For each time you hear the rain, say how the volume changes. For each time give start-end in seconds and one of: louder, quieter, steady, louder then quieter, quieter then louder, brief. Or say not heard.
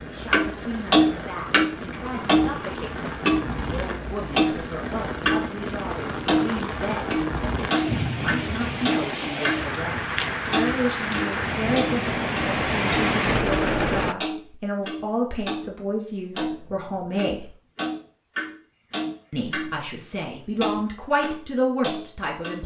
0.0-14.2 louder.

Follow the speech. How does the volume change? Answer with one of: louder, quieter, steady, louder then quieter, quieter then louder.
louder.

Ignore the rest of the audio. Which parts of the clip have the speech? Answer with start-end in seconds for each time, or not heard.
0.0-17.6, 19.3-22.6.